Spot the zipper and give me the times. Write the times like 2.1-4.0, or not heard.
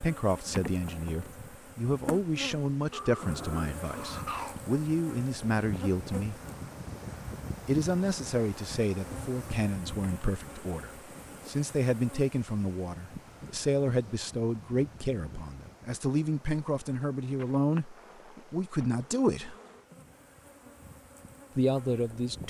not heard.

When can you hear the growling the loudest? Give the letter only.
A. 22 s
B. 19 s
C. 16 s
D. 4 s
D.